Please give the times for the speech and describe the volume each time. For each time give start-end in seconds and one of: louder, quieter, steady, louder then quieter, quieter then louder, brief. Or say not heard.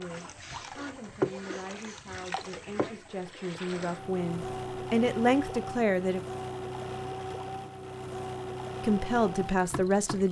0.0-6.2 louder
8.8-10.2 brief.